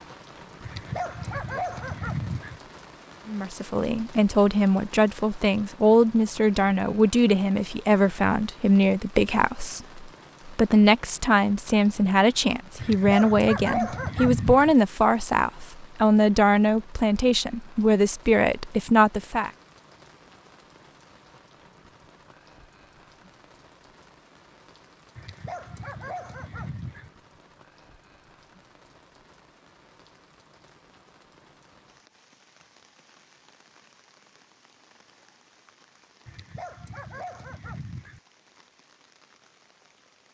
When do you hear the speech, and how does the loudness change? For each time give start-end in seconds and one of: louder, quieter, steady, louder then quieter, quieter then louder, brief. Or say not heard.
3.2-19.5 steady.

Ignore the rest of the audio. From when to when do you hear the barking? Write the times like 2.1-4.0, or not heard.
0.6-2.6, 12.8-14.8, 25.1-27.1, 36.2-38.2.